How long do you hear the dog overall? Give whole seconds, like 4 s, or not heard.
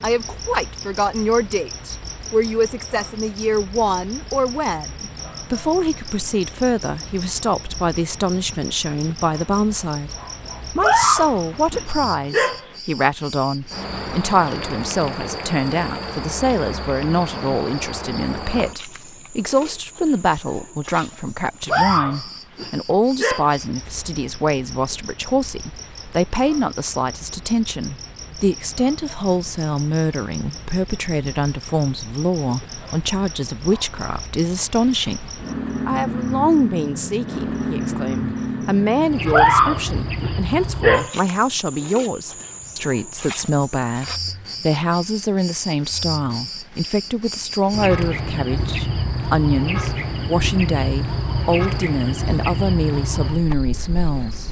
6 s.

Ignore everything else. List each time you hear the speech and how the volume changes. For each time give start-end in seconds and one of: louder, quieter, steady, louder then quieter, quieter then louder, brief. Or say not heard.
0.0-54.4 steady.